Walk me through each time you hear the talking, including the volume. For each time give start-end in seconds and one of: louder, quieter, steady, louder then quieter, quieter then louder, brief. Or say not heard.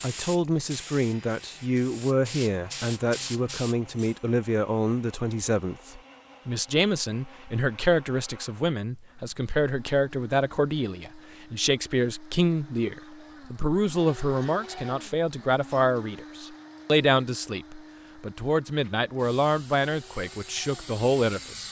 0.0-21.6 steady.